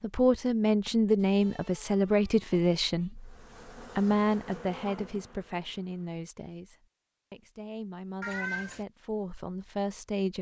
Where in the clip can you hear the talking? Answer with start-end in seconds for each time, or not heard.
0.0-10.3.